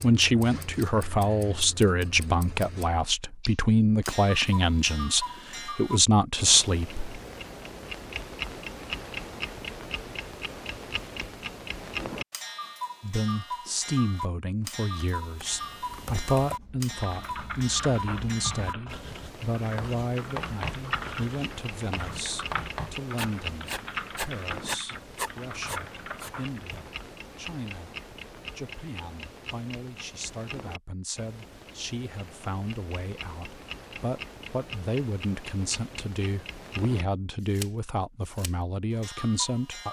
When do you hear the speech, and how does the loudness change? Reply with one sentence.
The speech can be heard from 0.0 to 7.0 s, at a steady volume; and from 13.0 to 39.8 s, getting quieter then louder.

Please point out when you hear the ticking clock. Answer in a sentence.
You can hear the ticking clock from 0.0 to 39.8 s.